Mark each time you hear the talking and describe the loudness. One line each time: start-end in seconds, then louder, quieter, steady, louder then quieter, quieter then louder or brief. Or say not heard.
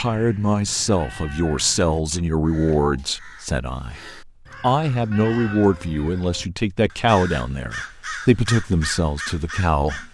0.0-10.0 steady.